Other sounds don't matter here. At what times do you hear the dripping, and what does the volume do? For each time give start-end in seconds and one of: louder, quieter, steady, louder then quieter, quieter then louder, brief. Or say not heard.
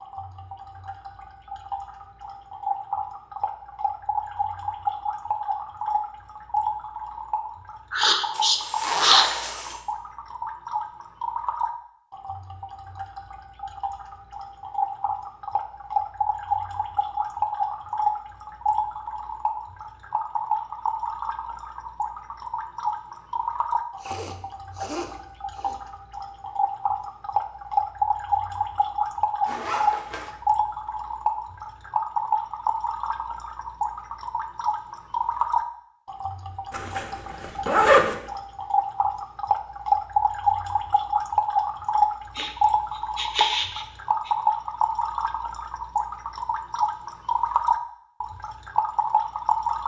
0.0-49.8 louder.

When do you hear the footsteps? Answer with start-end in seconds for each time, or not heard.
not heard.